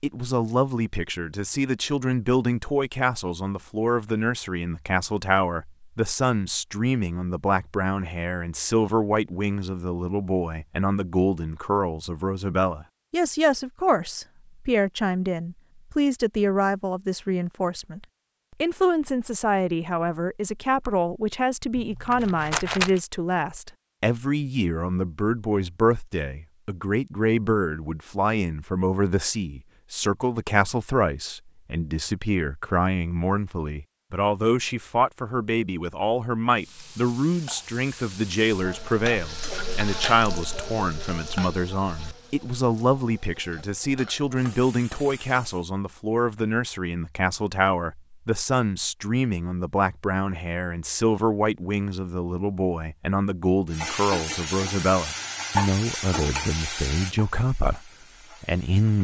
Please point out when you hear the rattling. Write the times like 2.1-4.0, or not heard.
21.8-23.0.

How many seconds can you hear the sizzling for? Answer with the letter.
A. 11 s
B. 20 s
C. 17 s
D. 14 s
D.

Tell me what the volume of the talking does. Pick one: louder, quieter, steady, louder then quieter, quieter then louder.
steady.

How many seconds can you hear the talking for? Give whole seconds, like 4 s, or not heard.
59 s.